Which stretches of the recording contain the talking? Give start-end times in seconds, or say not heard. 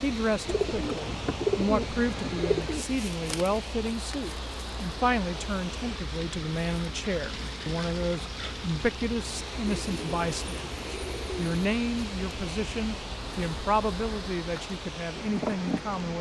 0.0-16.1.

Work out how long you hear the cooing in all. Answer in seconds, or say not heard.
4 s.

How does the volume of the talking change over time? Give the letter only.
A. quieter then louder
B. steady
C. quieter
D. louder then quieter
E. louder
B.